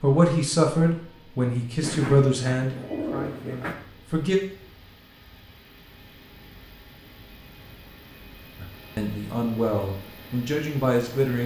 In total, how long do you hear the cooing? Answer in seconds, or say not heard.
2 s.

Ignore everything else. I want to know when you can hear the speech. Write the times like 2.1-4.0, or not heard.
0.0-4.4, 8.6-11.4.